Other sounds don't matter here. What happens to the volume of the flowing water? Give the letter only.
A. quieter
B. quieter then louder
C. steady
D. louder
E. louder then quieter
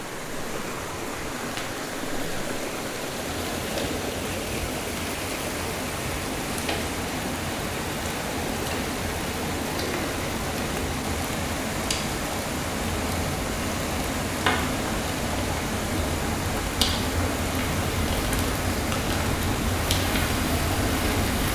C.